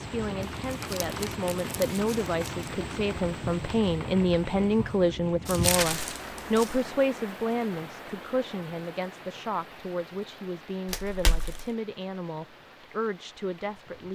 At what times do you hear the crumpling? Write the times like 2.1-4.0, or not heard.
0.4-2.7, 5.5-6.8, 10.8-11.7.